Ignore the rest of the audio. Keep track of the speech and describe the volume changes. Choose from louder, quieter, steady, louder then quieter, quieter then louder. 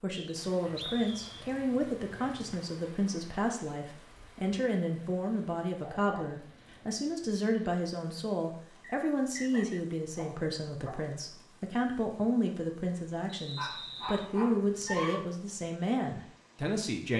steady.